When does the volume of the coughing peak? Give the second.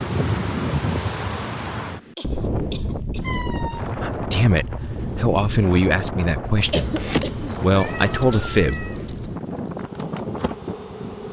7 s.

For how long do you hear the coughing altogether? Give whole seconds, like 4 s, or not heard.
2 s.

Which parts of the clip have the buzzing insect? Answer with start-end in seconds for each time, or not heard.
6.6-11.2.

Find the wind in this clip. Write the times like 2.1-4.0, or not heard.
0.0-11.2.